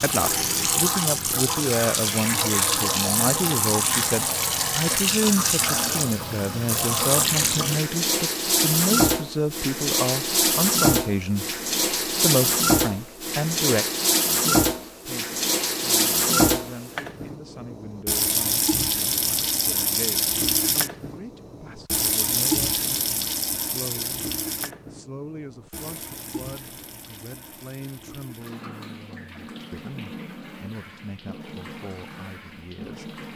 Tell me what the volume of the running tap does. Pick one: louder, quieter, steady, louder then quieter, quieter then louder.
quieter.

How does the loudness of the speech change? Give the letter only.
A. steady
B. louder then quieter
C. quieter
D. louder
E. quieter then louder
C.